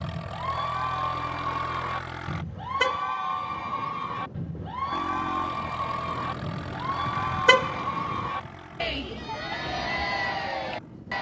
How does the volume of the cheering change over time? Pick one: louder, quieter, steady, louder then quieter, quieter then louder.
steady.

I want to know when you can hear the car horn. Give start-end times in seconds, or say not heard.
2.4-3.6, 7.0-8.3.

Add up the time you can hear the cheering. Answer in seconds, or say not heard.
11 s.